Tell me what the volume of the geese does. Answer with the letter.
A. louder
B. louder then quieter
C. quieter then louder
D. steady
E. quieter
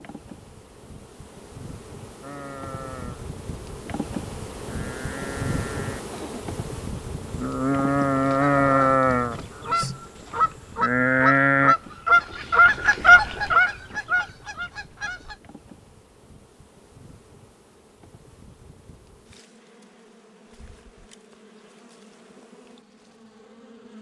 B.